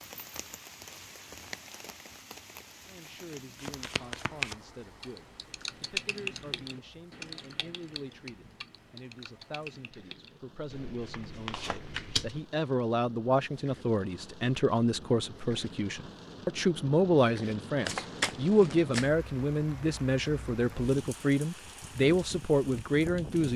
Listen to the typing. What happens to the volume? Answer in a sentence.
The volume of the typing goes down.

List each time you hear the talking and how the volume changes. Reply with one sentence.
The talking can be heard from 2.9 to 23.5 s, getting louder.